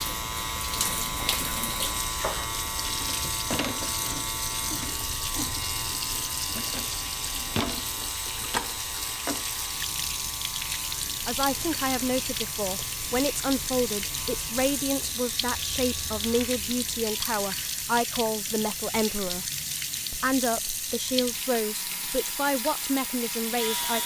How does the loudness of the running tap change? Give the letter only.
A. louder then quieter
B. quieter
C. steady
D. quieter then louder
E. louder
C.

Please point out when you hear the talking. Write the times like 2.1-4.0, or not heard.
11.2-19.5, 20.1-24.0.